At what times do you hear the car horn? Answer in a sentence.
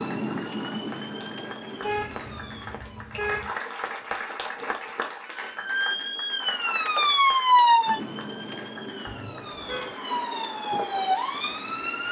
The car horn can be heard from 1.8 to 3.5 s and from 9.1 to 9.9 s.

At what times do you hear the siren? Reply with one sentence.
You can hear the siren from 0.0 to 2.7 s and from 5.2 to 12.0 s.